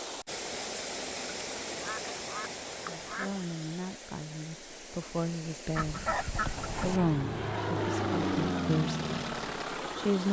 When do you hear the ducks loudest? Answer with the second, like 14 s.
6 s.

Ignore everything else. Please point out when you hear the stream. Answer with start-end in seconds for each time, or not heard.
0.0-10.2.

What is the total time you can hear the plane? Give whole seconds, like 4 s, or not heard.
4 s.